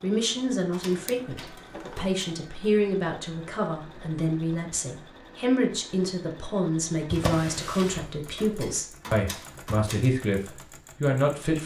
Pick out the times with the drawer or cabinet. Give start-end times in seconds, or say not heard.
1.0-2.0, 7.1-8.1.